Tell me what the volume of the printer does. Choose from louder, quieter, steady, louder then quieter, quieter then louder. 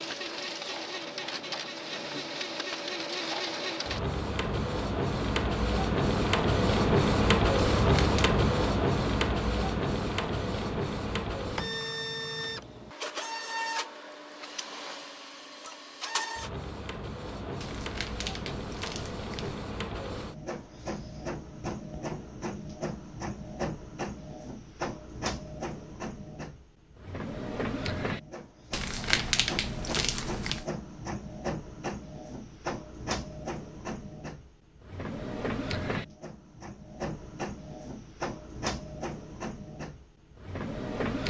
quieter.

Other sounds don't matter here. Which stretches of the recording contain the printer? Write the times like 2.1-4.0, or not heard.
0.0-41.2.